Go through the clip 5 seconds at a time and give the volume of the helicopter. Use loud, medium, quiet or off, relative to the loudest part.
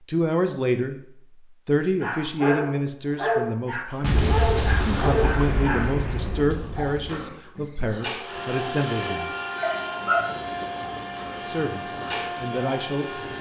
off, loud, loud.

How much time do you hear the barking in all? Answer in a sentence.
The barking can be heard for 11 seconds in total.